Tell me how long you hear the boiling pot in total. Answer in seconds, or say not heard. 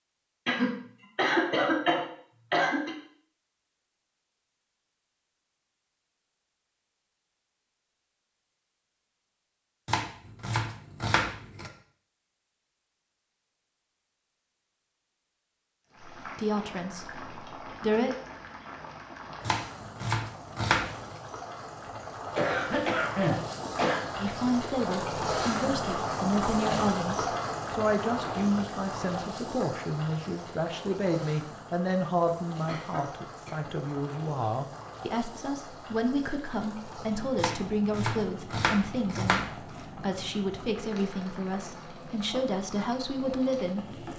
28 s.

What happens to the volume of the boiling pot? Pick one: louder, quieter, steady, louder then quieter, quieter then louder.
louder then quieter.